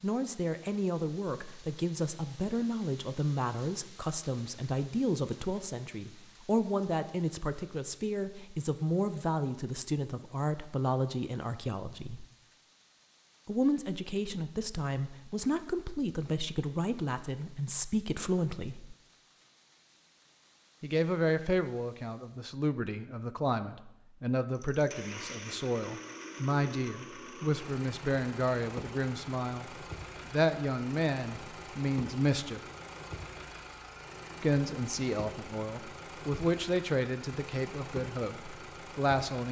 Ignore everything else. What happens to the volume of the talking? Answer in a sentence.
The loudness of the talking stays about the same.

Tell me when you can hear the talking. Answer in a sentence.
The talking can be heard from 0.0 to 12.2 s, from 13.4 to 18.9 s, from 20.8 to 32.6 s and from 34.4 to 39.4 s.